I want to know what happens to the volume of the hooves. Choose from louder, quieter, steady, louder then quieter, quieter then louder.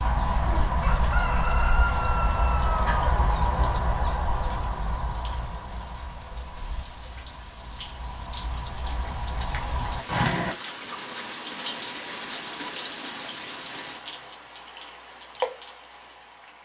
quieter then louder.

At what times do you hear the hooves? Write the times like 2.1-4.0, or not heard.
0.0-10.6.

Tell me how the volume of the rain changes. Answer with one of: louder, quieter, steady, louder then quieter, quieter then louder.
louder.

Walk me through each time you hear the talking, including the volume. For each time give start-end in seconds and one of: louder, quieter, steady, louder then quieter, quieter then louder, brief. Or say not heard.
not heard.